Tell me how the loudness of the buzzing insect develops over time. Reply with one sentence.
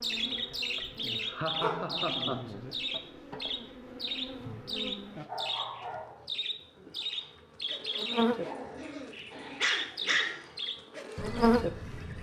The loudness of the buzzing insect goes up, then down.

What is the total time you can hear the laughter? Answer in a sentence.
You can hear the laughter for 2 seconds altogether.